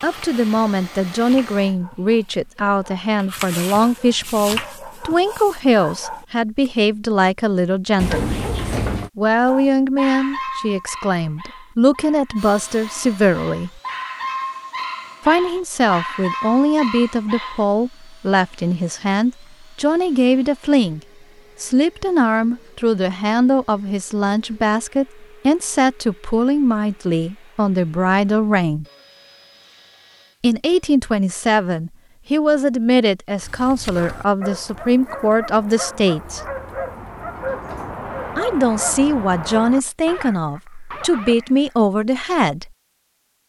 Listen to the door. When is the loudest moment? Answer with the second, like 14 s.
8 s.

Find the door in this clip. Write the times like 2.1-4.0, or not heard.
8.0-9.1, 36.2-38.0.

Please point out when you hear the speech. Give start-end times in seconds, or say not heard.
0.0-8.4, 9.2-13.8, 15.2-21.0, 21.6-28.9, 30.4-36.4, 38.4-42.7.